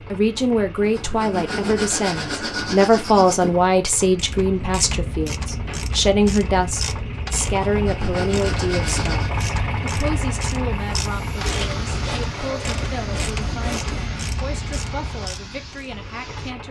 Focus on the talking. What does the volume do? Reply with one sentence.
The volume of the talking goes down.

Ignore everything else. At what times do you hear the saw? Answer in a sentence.
You can hear the saw from 0.8 to 3.5 s, from 7.5 to 9.3 s and from 11.5 to 14.2 s.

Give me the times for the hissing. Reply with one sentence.
You can hear the hissing from 10.7 to 16.6 s.